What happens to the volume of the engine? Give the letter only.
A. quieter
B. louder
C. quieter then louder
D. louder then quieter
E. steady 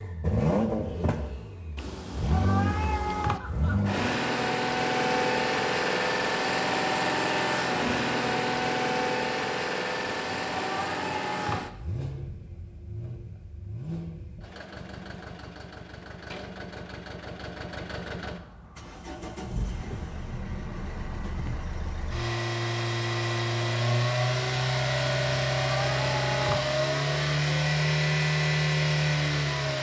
C.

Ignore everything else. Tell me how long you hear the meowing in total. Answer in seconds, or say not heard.
5 s.